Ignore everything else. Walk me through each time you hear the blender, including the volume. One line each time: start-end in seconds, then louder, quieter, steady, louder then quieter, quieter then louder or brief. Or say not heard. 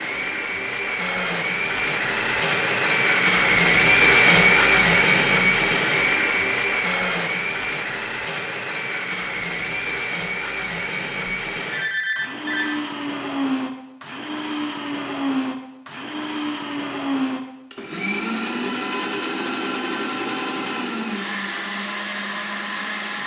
0.0-23.2 quieter.